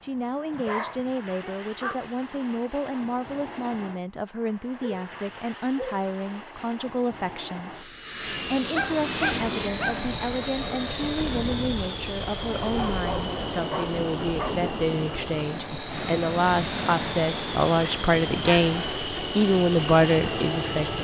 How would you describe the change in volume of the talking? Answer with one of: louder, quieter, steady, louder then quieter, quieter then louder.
louder.